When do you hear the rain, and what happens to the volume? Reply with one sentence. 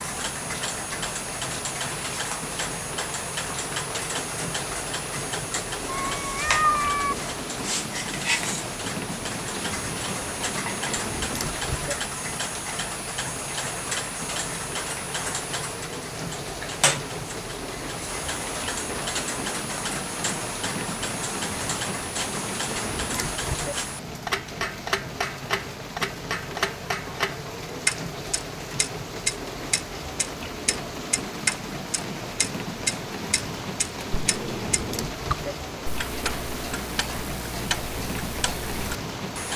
The rain can be heard from 0.0 to 39.5 s, at a steady volume.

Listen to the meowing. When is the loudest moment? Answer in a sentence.
The volume of the meowing peaks at 7 seconds.